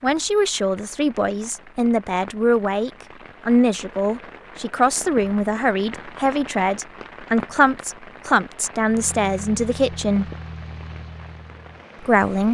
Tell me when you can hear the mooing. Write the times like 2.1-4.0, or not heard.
not heard.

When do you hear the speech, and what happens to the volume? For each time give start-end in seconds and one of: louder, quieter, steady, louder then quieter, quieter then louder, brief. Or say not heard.
0.0-10.3 steady
12.0-12.4 brief.